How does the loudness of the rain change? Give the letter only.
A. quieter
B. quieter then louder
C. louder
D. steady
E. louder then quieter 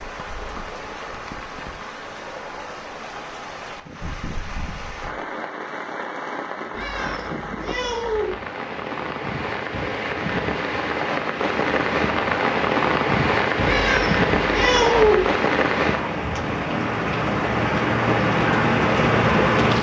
C.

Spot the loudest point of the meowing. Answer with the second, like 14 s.
15 s.